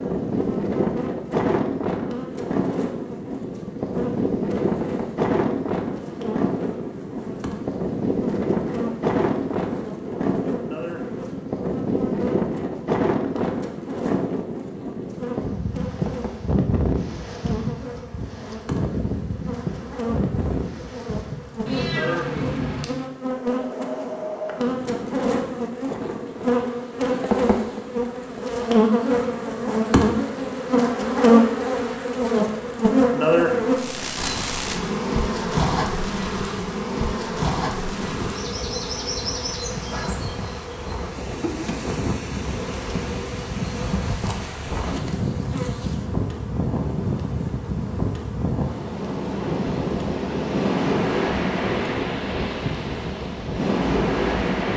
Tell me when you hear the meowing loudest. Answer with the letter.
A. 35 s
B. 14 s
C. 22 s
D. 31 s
C.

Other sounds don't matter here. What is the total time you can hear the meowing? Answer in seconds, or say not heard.
2 s.